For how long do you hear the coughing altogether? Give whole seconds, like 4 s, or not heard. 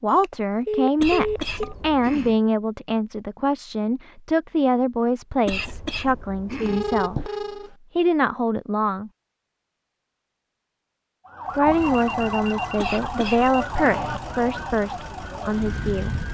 5 s.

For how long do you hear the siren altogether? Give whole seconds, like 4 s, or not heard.
5 s.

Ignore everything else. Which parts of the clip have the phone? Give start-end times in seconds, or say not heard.
0.1-1.8, 6.7-7.7, 11.7-13.7.